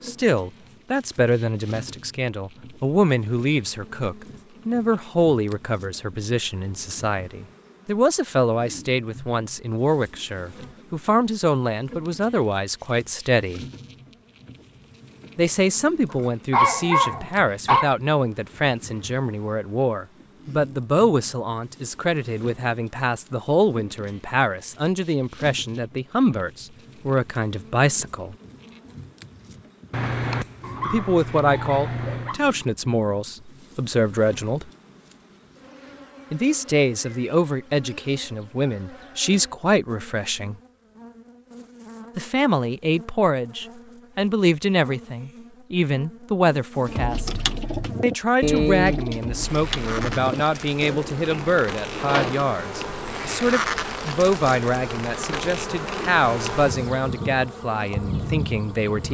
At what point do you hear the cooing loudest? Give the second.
49 s.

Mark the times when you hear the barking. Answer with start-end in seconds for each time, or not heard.
16.1-17.9, 29.9-32.4.